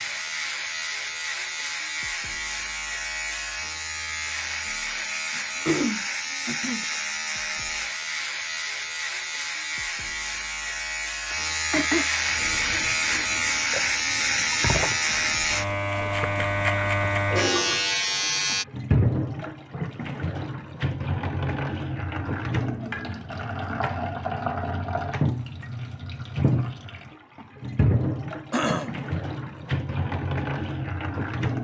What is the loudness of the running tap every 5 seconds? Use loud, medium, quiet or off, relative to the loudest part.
off, off, medium, loud, loud, loud, loud.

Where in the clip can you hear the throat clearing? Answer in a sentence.
The throat clearing can be heard from 5.3 to 6.8 s, from 11.3 to 12.1 s and from 28.5 to 29.0 s.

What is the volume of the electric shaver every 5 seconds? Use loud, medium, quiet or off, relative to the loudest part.
medium, medium, loud, loud, off, off, off.